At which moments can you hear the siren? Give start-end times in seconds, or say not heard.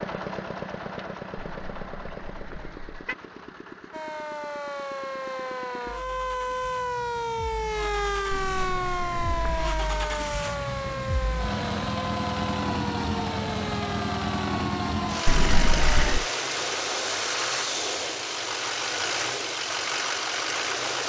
3.9-16.0.